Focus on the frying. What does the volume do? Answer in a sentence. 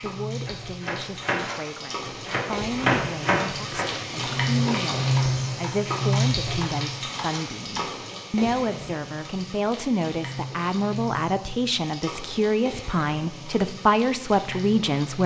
The volume of the frying goes up, then down.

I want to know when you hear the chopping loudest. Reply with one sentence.
The loudest moment of the chopping is at 3 seconds.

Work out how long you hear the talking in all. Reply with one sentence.
The talking can be heard for 15 seconds in total.